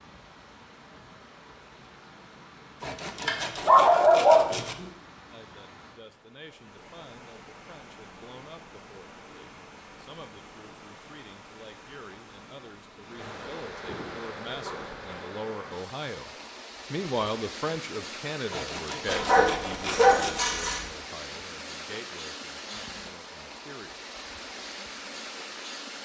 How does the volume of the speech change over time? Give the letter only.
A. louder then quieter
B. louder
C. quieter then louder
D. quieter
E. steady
A.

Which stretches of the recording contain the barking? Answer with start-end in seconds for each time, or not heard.
3.2-4.8, 13.8-15.3, 19.1-20.8.